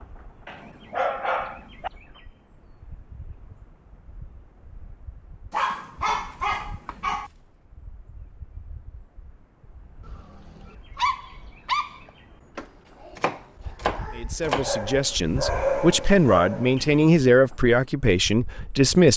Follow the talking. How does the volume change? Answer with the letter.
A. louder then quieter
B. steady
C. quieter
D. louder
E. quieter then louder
A.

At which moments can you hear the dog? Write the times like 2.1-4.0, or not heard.
0.5-1.9, 5.5-7.3, 10.1-12.1, 14.4-16.8.